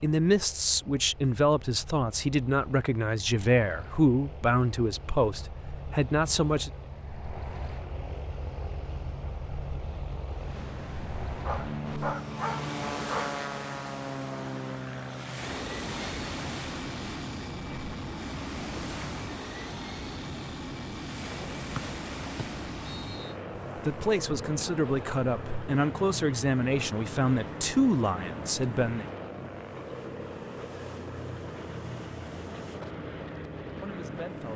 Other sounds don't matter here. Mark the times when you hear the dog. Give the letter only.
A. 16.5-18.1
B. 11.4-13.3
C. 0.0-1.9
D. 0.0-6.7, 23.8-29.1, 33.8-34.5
B.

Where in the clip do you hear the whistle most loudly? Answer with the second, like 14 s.
22 s.